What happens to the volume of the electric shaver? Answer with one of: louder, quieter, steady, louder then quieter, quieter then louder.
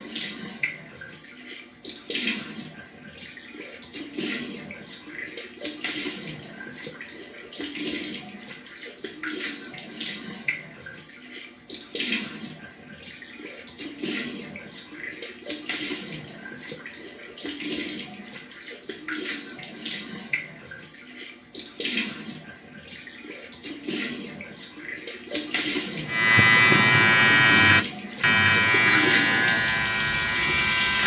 quieter.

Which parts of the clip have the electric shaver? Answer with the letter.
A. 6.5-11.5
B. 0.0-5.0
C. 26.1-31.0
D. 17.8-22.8
C.